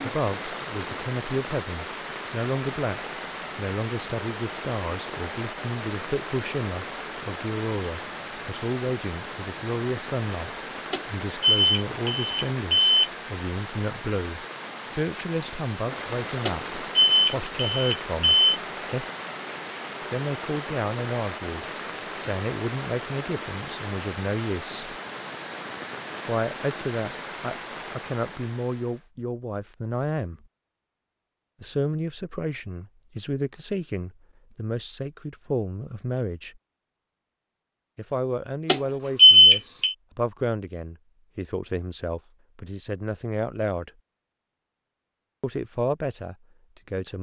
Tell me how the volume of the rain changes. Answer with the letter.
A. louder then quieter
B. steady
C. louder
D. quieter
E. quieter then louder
B.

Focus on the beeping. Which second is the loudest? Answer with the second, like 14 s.
39 s.